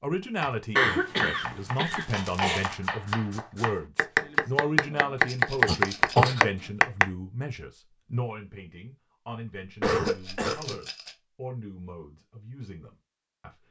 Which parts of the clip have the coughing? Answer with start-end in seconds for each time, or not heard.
0.8-2.6, 5.7-6.5, 9.8-10.8.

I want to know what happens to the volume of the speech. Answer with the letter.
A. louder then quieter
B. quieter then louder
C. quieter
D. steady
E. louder
C.